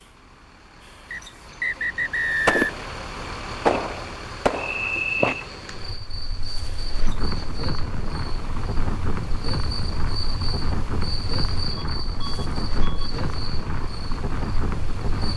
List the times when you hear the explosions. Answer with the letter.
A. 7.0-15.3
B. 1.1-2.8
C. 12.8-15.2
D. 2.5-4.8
D.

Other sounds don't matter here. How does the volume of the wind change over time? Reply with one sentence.
The volume of the wind stays about the same.